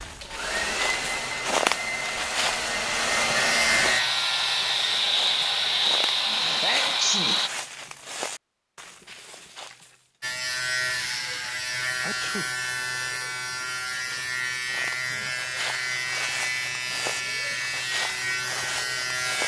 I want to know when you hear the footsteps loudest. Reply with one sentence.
The volume of the footsteps peaks at 2 seconds.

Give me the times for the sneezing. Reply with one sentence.
The sneezing can be heard from 6.2 to 7.4 s and from 12.0 to 12.5 s.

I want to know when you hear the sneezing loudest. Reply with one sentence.
The volume of the sneezing peaks at 7 seconds.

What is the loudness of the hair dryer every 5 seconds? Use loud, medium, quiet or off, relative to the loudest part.
loud, loud, off, off.